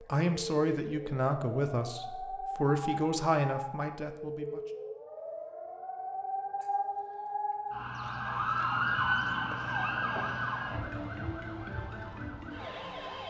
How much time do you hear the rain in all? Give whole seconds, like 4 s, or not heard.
not heard.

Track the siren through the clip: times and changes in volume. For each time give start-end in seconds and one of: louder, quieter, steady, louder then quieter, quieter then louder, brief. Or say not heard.
0.0-13.2 louder then quieter.